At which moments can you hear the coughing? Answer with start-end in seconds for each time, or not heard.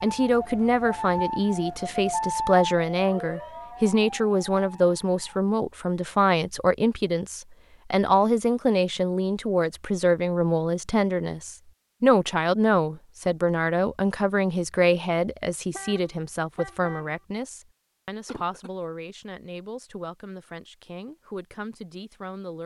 18.2-18.7.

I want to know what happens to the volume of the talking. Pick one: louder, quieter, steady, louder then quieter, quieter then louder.
quieter.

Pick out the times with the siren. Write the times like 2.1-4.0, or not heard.
0.0-5.4.